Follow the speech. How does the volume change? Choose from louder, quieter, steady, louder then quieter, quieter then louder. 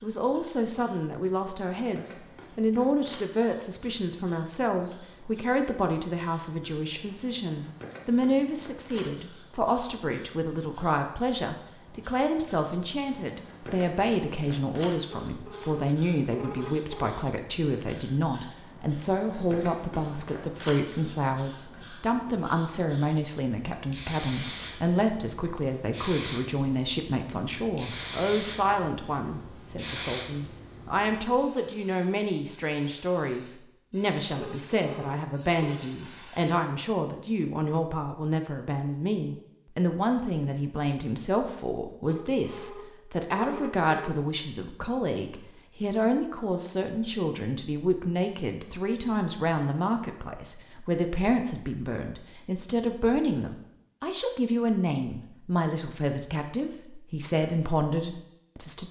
steady.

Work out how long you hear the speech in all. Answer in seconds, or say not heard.
59 s.